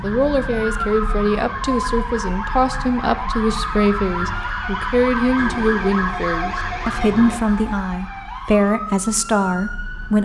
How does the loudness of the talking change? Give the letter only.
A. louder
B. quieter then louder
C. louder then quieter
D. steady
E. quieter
D.